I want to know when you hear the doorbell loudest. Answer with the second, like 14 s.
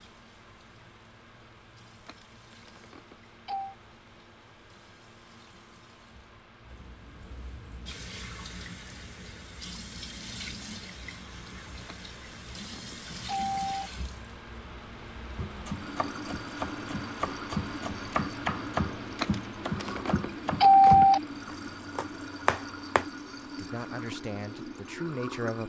21 s.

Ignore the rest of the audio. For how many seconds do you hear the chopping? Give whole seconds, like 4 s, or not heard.
8 s.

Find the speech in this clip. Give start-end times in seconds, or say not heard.
23.6-25.6.